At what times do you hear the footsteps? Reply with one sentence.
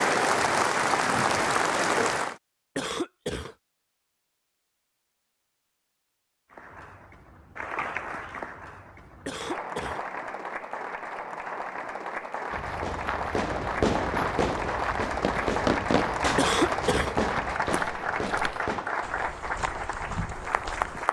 You can hear the footsteps from 12.5 to 21.0 s.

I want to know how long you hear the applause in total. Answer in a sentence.
You can hear the applause for 17 seconds altogether.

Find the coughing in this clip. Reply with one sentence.
You can hear the coughing from 2.8 to 3.5 s, from 9.2 to 10.1 s and from 16.4 to 17.1 s.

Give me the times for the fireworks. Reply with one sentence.
You can hear the fireworks from 12.7 to 19.1 s.